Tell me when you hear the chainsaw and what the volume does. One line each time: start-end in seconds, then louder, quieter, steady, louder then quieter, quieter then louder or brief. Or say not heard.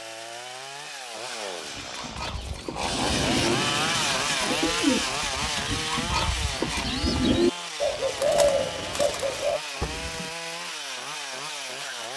0.0-12.1 louder then quieter.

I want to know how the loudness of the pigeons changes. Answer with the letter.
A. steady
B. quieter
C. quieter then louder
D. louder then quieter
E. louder
E.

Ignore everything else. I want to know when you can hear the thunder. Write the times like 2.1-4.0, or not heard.
2.7-4.2.